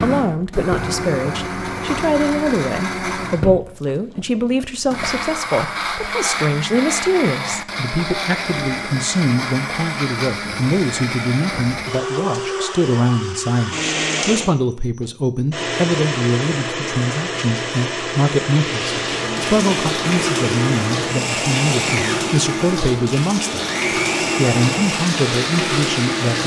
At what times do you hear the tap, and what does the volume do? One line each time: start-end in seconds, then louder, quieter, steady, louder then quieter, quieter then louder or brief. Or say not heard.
18.5-26.4 steady.